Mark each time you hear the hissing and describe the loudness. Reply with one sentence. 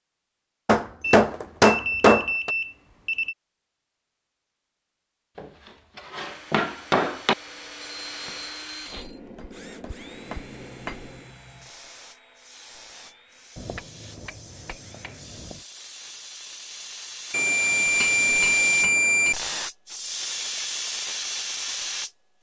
The hissing can be heard from 10.1 to 22.1 s, getting louder.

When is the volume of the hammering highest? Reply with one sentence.
The loudest moment of the hammering is at 2 seconds.